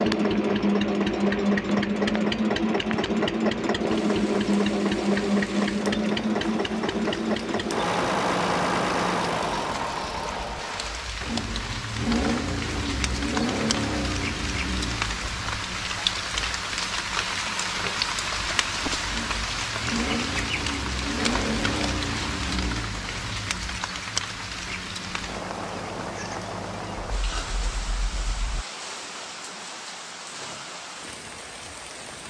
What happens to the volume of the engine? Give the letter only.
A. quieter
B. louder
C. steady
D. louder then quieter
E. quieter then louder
A.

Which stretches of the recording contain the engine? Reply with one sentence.
You can hear the engine from 0.0 to 28.6 s.